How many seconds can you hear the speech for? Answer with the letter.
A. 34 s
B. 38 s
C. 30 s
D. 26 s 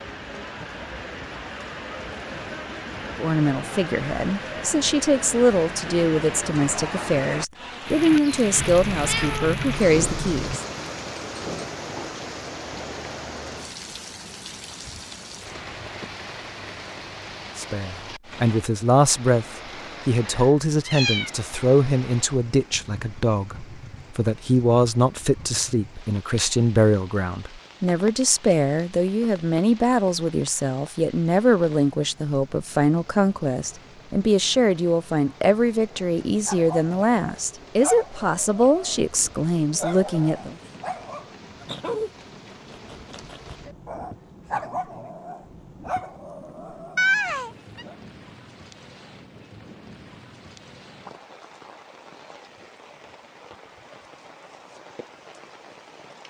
C.